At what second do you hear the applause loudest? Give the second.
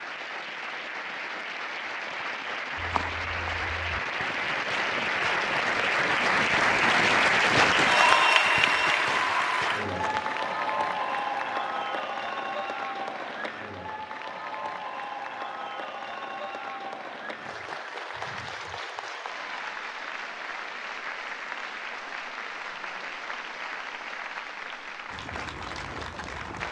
8 s.